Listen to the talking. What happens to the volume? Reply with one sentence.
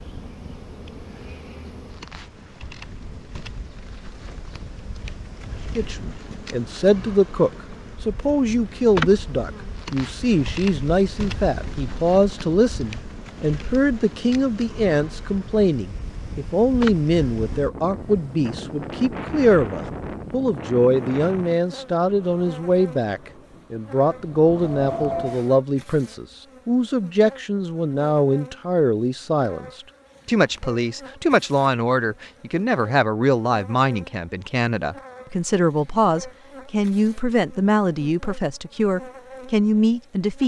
The volume of the talking stays about the same.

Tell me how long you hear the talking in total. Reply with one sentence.
The talking can be heard for 35 seconds in total.